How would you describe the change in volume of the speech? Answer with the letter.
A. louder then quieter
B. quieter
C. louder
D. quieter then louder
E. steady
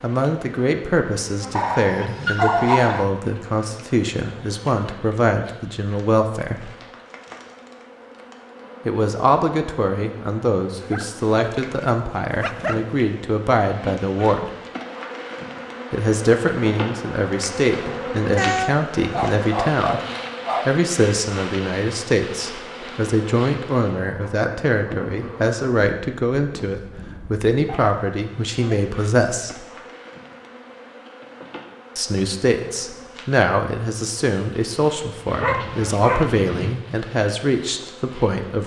E.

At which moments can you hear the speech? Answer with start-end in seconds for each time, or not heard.
0.0-6.7, 8.8-14.5, 15.9-20.0, 20.6-29.6, 31.9-38.6.